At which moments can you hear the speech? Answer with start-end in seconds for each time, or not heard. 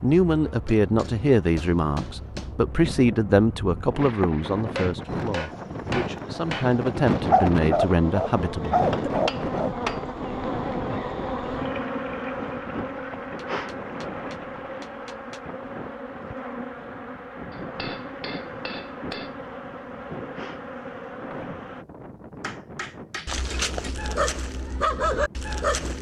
0.0-9.1.